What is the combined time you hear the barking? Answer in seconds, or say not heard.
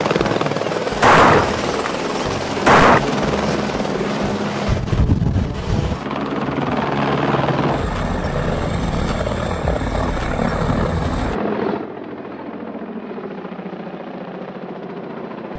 not heard.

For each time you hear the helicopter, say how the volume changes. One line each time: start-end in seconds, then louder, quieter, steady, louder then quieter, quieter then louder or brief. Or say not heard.
0.0-15.5 quieter.